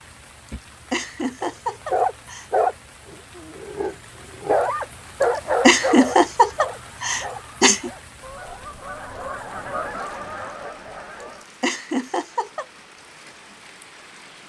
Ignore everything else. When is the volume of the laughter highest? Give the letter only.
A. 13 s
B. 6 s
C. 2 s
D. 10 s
B.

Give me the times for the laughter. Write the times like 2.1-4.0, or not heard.
0.9-2.5, 5.7-7.9, 11.6-12.7.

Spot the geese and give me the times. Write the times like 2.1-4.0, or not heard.
6.3-11.4.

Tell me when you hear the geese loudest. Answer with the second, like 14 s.
10 s.